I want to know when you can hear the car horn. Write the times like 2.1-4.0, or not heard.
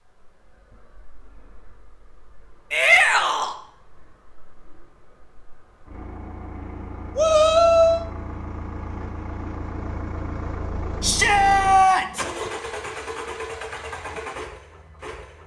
not heard.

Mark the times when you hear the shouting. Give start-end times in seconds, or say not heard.
2.7-3.5, 7.2-8.1, 11.0-12.2.